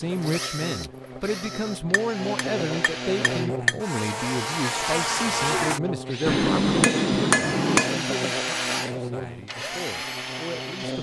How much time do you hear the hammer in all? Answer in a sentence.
The hammer can be heard for 4 seconds in total.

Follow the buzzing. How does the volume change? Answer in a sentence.
The volume of the buzzing goes up, then down.